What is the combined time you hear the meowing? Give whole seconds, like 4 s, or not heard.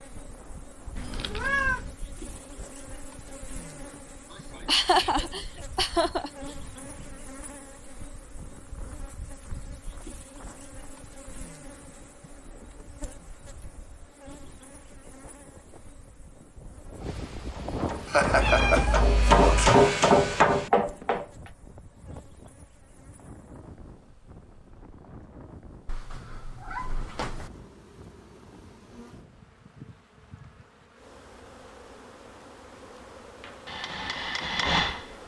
4 s.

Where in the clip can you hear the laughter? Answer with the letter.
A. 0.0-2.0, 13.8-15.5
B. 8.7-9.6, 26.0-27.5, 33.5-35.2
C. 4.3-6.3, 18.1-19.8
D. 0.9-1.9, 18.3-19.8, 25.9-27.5
C.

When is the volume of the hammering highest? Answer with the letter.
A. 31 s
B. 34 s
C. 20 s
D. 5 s
C.